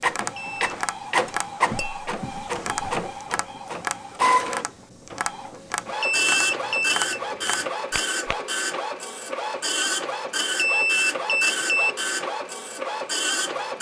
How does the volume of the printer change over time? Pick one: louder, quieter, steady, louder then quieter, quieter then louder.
steady.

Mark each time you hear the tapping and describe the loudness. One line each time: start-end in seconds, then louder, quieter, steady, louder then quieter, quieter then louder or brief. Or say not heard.
0.0-8.4 steady.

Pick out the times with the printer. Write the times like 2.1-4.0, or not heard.
0.0-13.7.